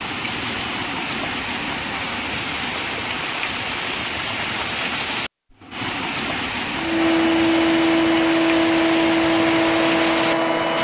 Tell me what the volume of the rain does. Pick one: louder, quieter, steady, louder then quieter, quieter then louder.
steady.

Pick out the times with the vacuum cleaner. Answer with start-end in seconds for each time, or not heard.
6.8-10.7.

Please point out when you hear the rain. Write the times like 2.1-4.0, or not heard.
0.0-10.7.